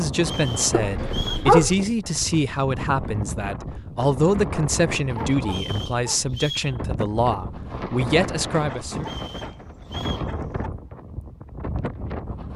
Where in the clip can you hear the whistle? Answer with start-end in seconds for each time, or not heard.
0.2-1.5, 5.5-6.8, 9.0-10.3.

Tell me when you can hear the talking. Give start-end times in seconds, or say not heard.
0.0-9.1.